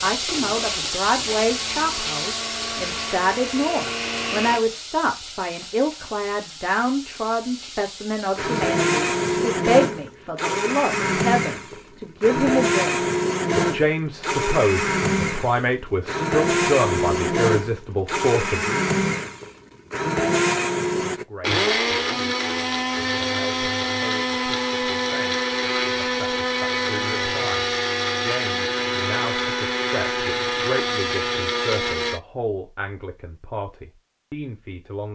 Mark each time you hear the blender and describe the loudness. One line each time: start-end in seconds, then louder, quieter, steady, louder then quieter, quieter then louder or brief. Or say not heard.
0.2-4.7 louder
8.3-32.2 steady.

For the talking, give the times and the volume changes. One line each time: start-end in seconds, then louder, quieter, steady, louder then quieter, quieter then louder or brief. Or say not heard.
0.0-18.9 steady
21.1-35.0 louder.